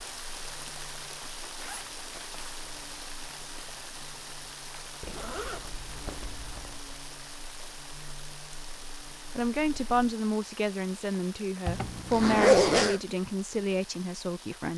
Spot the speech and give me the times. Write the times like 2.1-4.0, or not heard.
9.3-14.7.